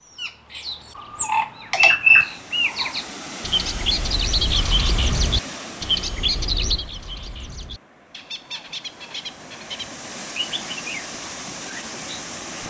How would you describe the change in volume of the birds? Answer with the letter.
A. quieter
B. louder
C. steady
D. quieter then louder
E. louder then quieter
A.